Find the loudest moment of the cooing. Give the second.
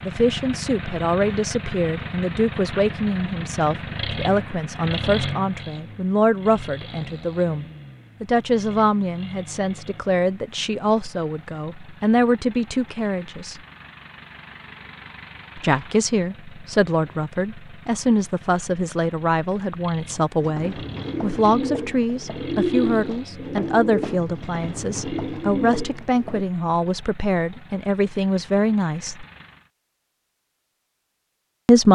23 s.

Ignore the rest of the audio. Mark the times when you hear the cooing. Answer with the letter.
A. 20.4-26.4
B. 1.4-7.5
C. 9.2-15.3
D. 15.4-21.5
A.